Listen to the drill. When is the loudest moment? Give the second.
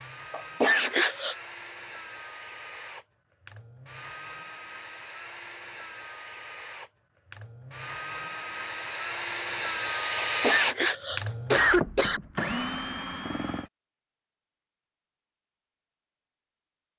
10 s.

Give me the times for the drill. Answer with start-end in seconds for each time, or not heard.
0.0-13.7.